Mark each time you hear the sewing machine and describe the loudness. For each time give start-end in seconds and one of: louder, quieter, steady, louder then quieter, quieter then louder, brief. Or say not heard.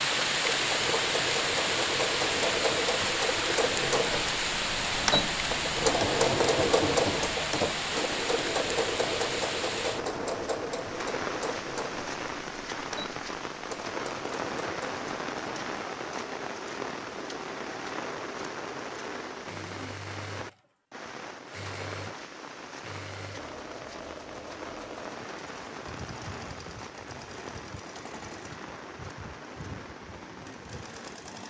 0.0-31.4 quieter.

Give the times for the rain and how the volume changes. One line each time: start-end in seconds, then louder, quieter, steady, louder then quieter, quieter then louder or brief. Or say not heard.
0.0-31.2 quieter.